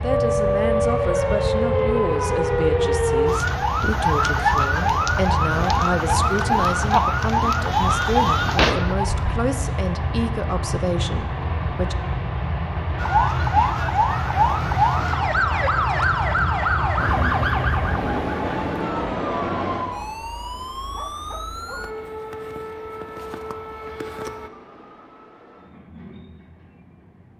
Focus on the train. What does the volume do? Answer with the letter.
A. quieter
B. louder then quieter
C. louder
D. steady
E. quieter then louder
A.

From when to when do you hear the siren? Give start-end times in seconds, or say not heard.
0.0-9.3, 12.9-24.5.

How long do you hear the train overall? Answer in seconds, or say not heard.
27 s.